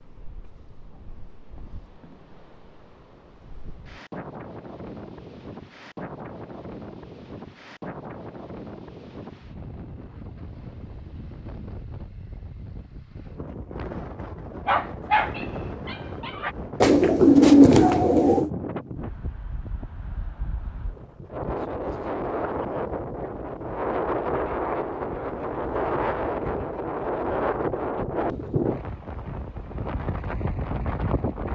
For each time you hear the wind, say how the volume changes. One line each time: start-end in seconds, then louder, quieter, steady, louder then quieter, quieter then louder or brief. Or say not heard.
0.0-31.5 louder.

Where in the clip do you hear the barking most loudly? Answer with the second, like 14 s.
15 s.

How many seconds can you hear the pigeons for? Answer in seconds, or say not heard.
2 s.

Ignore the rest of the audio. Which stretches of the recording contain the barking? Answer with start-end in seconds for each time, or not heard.
14.7-16.6.